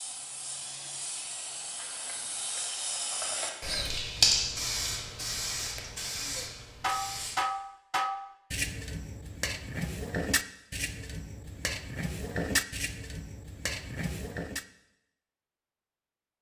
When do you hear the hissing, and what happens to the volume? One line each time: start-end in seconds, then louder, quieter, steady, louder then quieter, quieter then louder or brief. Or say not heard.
0.0-7.4 louder then quieter.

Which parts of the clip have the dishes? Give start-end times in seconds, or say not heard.
6.2-14.7.